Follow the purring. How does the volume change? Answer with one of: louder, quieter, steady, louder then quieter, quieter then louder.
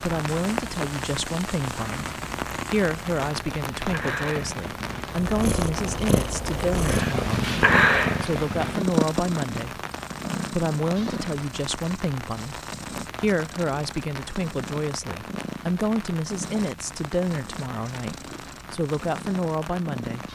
louder then quieter.